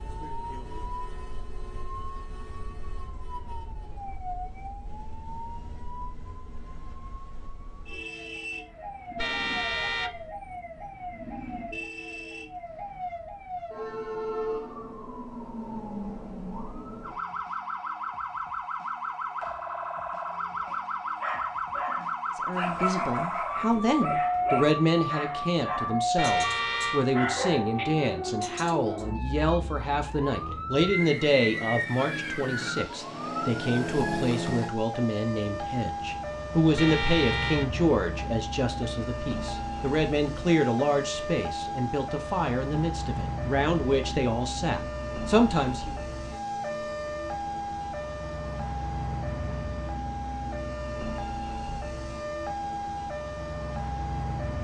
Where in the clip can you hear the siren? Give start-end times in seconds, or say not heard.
0.0-54.5.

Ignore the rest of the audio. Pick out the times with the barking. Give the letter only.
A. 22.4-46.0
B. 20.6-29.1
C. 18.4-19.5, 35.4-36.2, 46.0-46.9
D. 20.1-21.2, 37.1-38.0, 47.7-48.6
B.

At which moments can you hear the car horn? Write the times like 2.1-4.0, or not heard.
9.2-10.3, 26.1-27.1, 36.8-37.7.